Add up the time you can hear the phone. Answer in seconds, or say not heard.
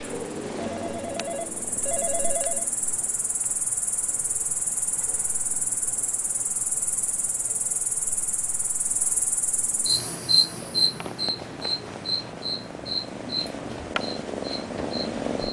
2 s.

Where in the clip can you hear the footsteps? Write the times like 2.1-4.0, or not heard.
not heard.